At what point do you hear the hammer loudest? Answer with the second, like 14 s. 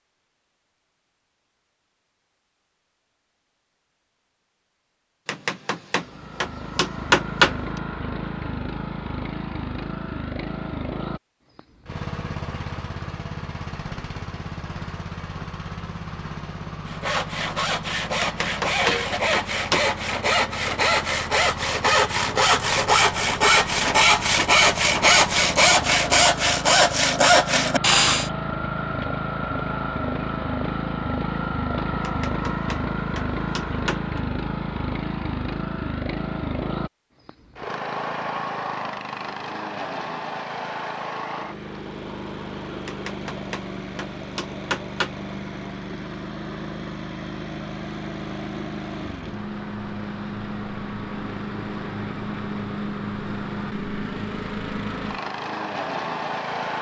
7 s.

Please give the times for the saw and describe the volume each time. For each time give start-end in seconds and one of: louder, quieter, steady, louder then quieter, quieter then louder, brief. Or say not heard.
16.9-28.3 louder.